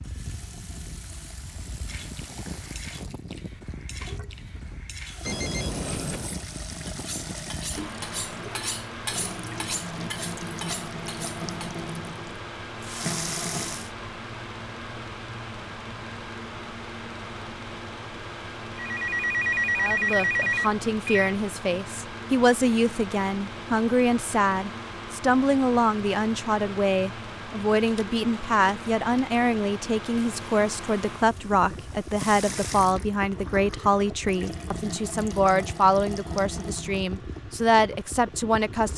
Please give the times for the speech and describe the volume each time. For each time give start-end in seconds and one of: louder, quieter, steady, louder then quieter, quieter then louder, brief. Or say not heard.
19.8-38.9 steady.